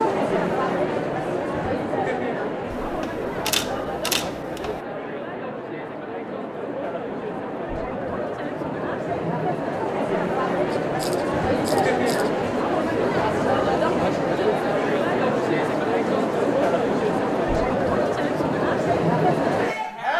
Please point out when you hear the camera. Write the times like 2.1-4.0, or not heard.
2.7-4.8, 10.7-12.3.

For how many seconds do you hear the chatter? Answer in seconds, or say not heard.
20 s.